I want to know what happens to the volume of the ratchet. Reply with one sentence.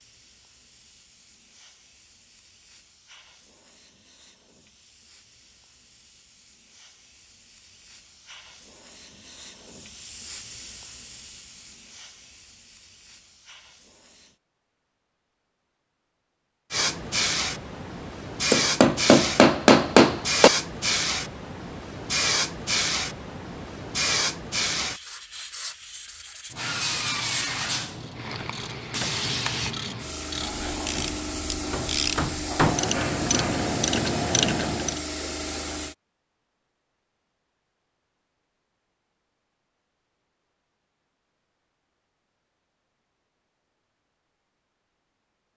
The loudness of the ratchet goes up.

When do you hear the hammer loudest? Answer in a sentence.
The volume of the hammer peaks at 20 seconds.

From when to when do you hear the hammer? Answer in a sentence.
The hammer can be heard from 18.5 to 20.5 s and from 30.4 to 32.8 s.